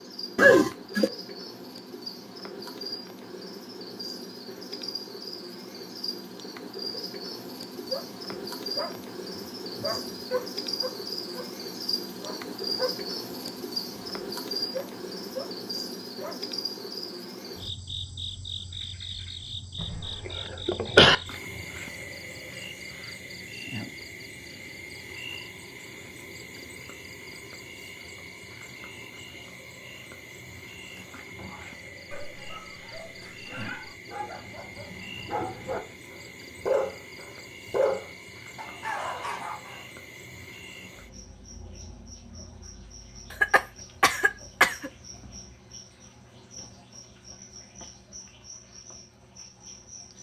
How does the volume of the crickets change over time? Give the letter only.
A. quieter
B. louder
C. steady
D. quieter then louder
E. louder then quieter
A.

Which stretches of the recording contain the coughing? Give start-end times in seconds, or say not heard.
0.3-1.1, 19.8-21.1, 43.4-44.9.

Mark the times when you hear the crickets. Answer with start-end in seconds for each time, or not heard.
0.0-50.1.